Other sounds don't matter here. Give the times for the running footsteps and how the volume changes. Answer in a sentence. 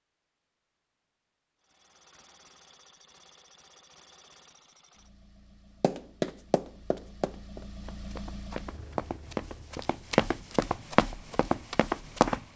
You can hear the running footsteps from 5.8 to 12.4 s, getting quieter then louder.